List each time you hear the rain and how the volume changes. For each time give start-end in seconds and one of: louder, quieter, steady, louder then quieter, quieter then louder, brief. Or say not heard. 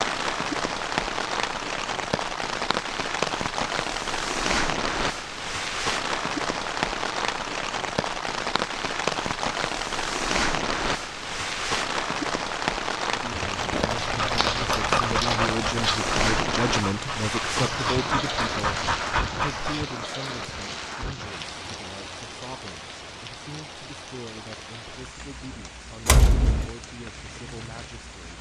0.0-28.3 quieter.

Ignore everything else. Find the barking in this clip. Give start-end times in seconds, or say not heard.
13.4-19.9.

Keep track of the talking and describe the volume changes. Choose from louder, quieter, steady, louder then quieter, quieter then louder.
quieter.